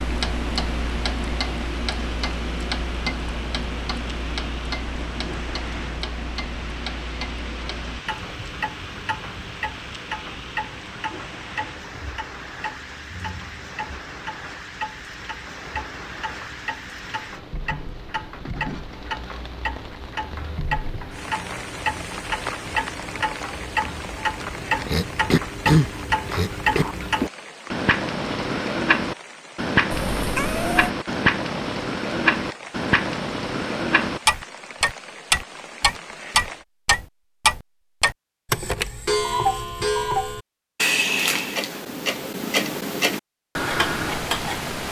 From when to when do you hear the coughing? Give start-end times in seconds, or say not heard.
24.9-26.9.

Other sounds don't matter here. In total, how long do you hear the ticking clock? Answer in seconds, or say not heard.
45 s.